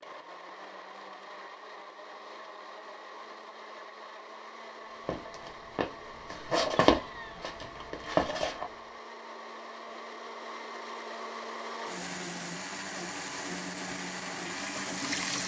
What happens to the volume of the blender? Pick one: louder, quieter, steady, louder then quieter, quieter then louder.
louder.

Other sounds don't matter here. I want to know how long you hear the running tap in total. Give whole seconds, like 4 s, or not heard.
2 s.